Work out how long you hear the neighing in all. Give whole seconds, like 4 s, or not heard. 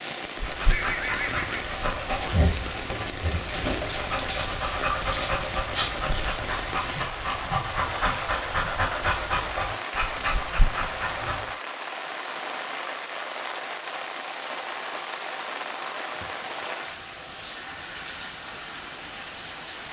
2 s.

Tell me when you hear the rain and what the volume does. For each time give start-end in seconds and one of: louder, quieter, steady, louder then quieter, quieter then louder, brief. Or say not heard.
0.0-19.8 steady.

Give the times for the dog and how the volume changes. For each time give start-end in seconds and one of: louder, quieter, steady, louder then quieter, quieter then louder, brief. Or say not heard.
0.3-11.5 steady.